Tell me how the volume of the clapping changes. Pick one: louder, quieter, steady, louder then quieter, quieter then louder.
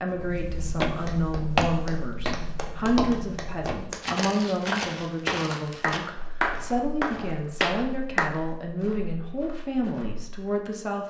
louder.